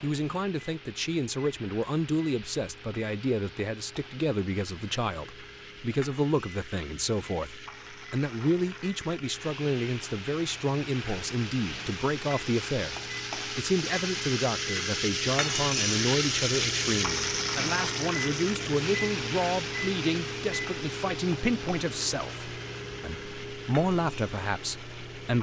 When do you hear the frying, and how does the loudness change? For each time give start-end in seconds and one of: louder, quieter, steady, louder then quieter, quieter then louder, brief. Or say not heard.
0.0-25.3 louder then quieter.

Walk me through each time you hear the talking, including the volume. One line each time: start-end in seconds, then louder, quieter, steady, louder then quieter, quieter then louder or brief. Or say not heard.
0.0-25.3 steady.